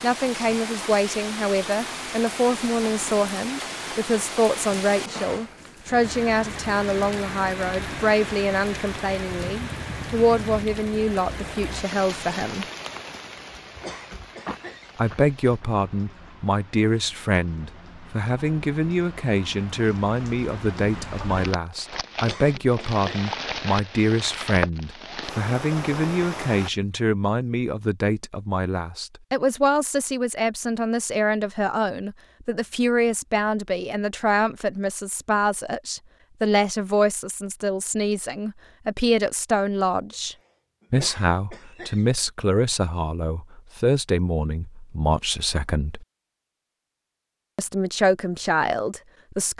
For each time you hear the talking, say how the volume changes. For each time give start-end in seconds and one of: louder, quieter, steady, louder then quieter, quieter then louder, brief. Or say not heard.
0.0-12.7 steady
14.9-46.0 steady
47.5-49.5 brief.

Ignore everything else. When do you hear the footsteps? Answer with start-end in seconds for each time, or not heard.
not heard.